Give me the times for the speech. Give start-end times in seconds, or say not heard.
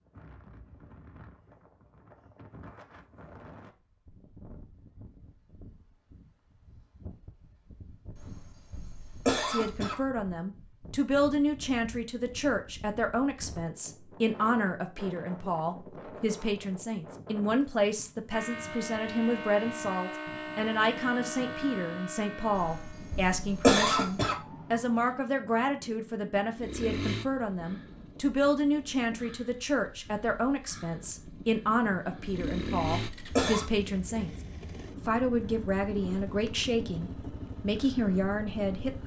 9.4-34.4, 35.0-39.0.